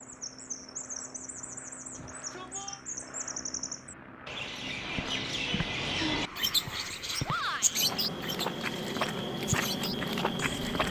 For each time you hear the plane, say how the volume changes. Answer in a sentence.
The plane can be heard from 0.0 to 10.8 s, getting louder.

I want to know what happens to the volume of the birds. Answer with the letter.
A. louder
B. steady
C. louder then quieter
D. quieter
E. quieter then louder
A.